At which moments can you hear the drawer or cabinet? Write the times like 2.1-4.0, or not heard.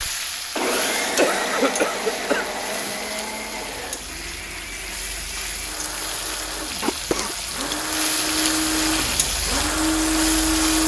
not heard.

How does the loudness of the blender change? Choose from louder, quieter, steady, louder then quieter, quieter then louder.
quieter then louder.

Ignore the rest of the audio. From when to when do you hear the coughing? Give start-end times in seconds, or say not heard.
1.1-3.0, 6.8-7.3.